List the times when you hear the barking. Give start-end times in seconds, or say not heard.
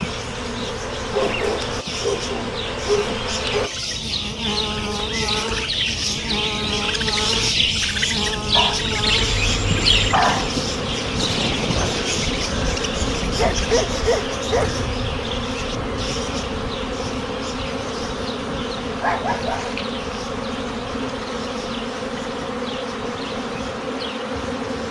1.1-3.7, 8.6-10.5, 13.3-14.8, 18.9-20.2.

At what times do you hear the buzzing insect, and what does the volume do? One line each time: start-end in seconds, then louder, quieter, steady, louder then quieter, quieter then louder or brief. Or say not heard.
0.0-24.8 steady.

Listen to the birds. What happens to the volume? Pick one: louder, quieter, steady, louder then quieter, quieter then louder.
louder then quieter.